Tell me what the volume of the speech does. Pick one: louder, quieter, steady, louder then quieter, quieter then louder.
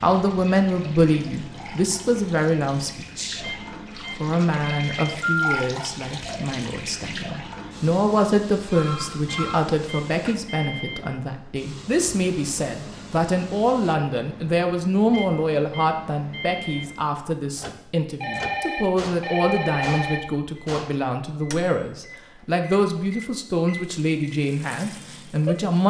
steady.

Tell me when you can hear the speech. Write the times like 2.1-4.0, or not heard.
0.0-3.5, 4.1-25.8.